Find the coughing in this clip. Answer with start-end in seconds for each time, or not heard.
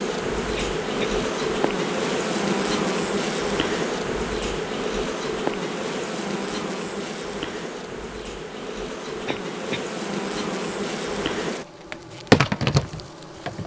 0.6-1.2, 9.2-9.8.